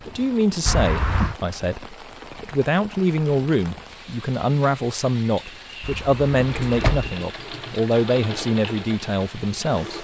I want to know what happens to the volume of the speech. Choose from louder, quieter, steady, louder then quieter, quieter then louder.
steady.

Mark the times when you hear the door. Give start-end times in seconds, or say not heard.
0.7-1.4, 5.8-7.1.